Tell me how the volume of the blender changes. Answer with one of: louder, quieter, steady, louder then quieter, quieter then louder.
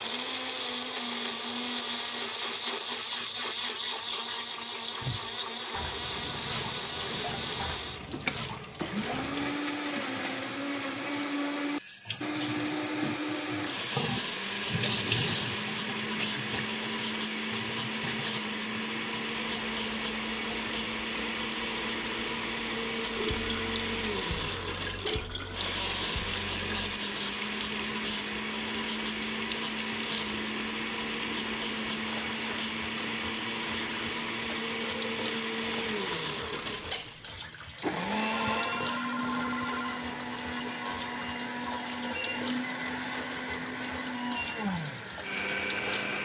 steady.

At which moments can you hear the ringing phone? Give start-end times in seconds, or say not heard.
38.3-39.9.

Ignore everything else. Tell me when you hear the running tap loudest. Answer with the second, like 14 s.
15 s.